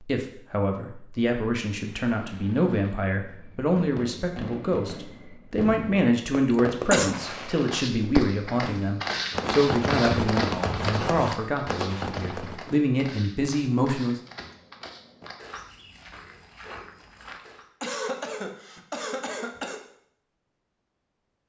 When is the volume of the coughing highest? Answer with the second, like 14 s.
7 s.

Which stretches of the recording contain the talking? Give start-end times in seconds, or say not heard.
0.0-14.2.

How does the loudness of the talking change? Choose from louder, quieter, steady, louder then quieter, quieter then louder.
steady.